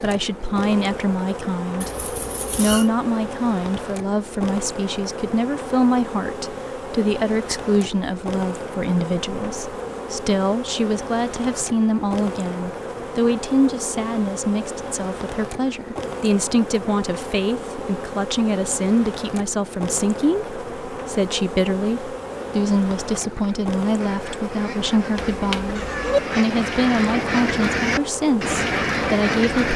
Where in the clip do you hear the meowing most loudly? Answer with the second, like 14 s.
26 s.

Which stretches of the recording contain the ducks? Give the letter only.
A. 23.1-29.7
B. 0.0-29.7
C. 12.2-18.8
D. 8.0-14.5
A.